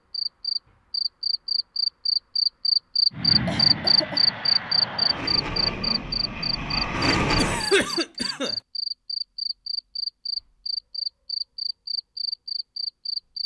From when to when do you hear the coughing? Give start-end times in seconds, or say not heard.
3.5-4.2, 7.3-8.6.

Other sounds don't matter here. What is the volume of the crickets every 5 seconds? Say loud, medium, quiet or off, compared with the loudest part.
loud, medium, medium.